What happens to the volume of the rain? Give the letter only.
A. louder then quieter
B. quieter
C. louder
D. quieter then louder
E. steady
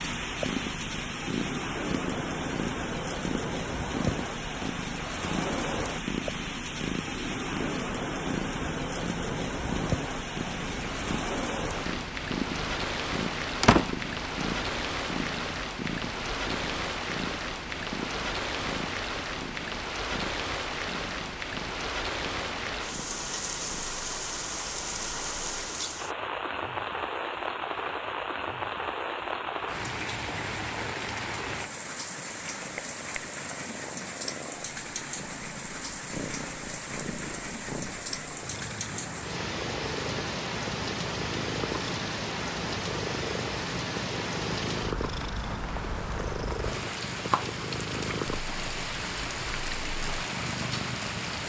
E.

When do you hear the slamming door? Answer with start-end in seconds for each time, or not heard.
13.6-14.1.